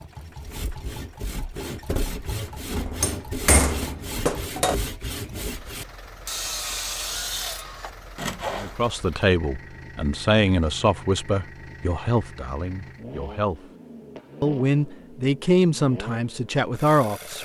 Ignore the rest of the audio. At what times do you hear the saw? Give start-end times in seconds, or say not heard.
0.2-8.8.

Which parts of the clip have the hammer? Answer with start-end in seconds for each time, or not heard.
2.8-4.8.